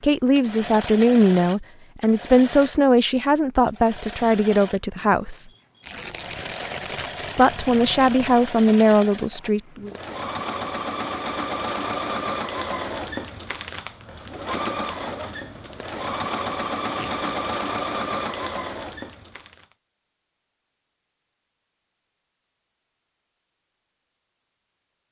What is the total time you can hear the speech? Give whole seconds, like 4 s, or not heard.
8 s.